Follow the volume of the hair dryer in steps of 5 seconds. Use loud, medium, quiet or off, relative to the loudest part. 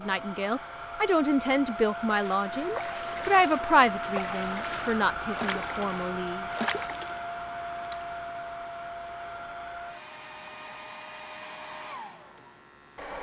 loud, loud, medium.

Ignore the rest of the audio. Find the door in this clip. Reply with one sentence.
You can't hear the door here.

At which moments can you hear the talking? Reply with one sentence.
You can hear the talking from 0.0 to 6.5 s.